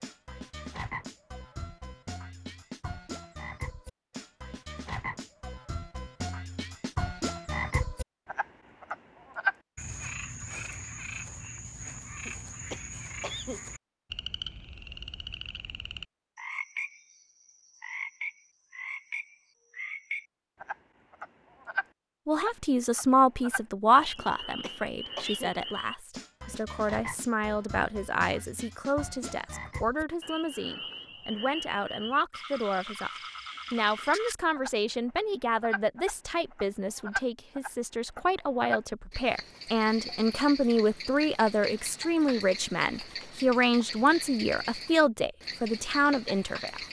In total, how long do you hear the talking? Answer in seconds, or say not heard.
24 s.